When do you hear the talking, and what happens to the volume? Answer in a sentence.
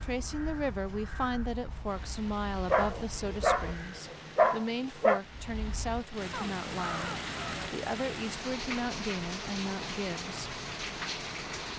You can hear the talking from 0.0 to 10.5 s, at a steady volume.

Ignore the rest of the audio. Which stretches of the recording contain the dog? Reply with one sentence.
The dog can be heard from 2.7 to 5.2 s.